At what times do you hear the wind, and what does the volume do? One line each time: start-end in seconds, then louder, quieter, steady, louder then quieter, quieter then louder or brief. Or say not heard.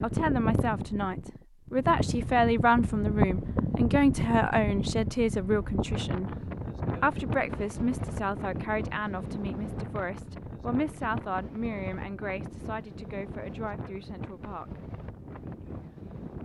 0.0-16.4 quieter.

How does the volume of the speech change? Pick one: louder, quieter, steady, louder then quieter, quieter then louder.
quieter.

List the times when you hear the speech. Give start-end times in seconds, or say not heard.
0.0-6.3, 7.0-14.8.